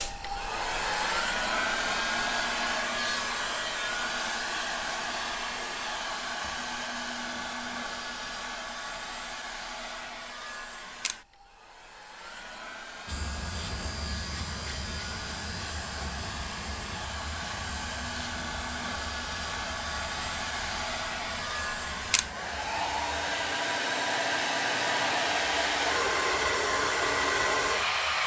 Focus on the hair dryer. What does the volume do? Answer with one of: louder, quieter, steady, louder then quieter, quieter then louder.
quieter then louder.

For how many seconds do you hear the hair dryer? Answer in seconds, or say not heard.
28 s.